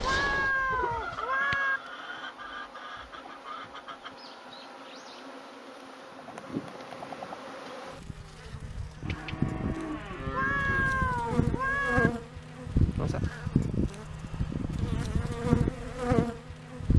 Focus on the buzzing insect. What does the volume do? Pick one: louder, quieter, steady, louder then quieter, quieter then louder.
louder.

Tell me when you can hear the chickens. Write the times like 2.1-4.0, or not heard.
0.0-4.2.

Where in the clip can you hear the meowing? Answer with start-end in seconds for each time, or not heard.
0.0-1.8, 10.3-12.1.